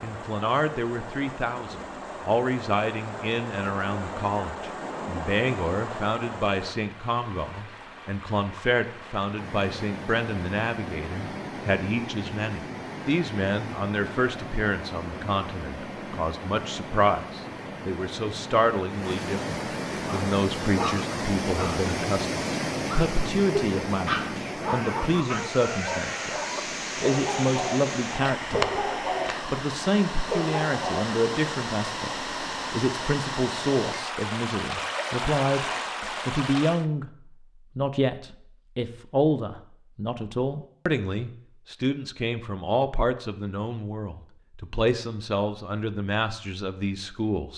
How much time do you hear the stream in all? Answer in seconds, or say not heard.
37 s.